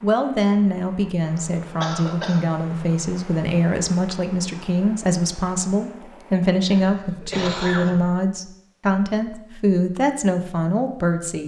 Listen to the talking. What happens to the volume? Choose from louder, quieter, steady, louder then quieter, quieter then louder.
steady.